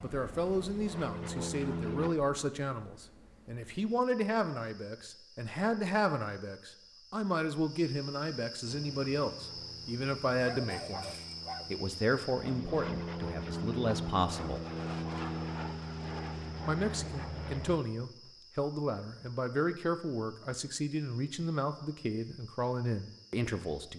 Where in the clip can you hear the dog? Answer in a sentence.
The dog can be heard from 10.4 to 11.8 s.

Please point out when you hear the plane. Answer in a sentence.
You can hear the plane from 0.0 to 2.1 s and from 8.6 to 17.8 s.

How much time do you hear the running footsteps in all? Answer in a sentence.
The running footsteps can't be heard in this clip.